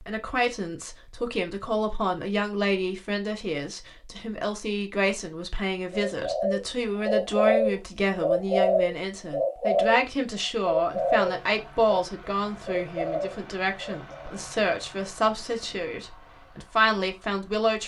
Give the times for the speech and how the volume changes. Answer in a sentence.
You can hear the speech from 0.0 to 17.8 s, at a steady volume.